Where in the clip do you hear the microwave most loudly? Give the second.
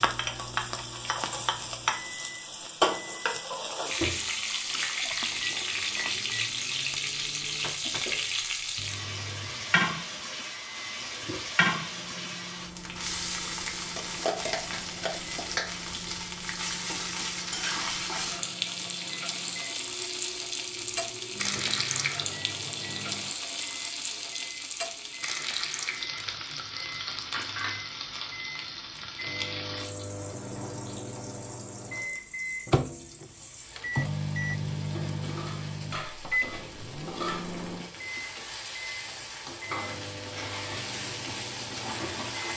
34 s.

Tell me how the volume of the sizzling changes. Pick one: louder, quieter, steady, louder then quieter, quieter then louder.
quieter.